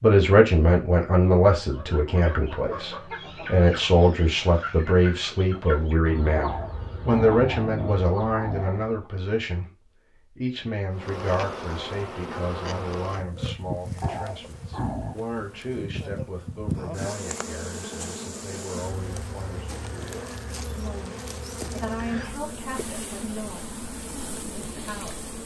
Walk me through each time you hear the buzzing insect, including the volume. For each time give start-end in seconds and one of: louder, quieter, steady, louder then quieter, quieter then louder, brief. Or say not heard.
10.9-25.4 steady.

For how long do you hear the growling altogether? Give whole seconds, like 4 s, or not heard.
4 s.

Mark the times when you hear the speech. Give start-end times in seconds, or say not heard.
0.0-9.7, 10.3-25.2.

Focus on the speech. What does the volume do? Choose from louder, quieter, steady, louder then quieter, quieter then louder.
quieter.